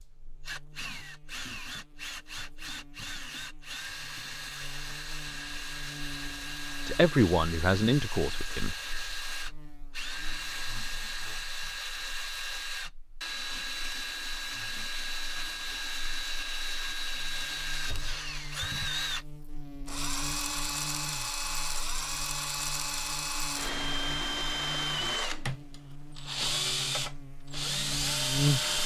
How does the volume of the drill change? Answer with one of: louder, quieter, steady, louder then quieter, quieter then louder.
louder.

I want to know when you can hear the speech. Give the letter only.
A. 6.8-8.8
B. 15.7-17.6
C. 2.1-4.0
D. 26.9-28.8
A.